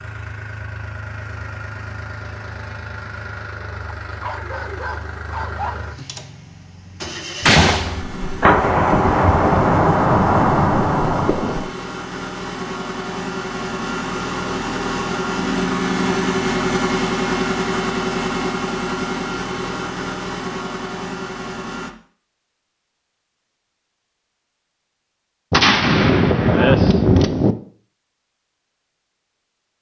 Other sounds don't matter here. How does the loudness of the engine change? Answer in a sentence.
The volume of the engine goes up.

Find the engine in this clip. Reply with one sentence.
The engine can be heard from 0.0 to 21.9 s.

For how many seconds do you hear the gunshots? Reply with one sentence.
The gunshots can be heard for 6 seconds in total.